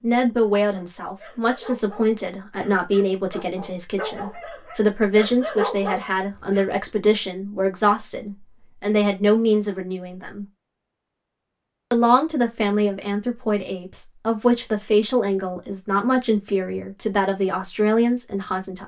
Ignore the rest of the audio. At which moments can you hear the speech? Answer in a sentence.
You can hear the speech from 0.0 to 10.4 s and from 11.9 to 18.8 s.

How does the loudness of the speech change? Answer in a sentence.
The loudness of the speech stays about the same.